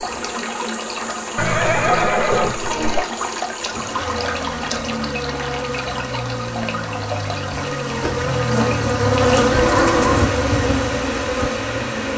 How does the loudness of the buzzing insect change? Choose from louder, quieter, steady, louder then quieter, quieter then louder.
louder.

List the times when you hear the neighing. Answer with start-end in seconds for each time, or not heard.
1.4-3.0, 9.5-10.3.